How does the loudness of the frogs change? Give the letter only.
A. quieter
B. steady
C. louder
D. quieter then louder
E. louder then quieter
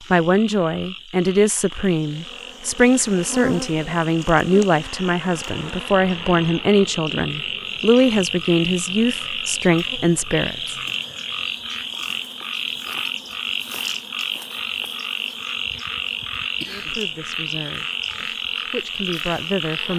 C.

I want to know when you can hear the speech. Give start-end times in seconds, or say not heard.
0.1-10.8, 16.6-19.9.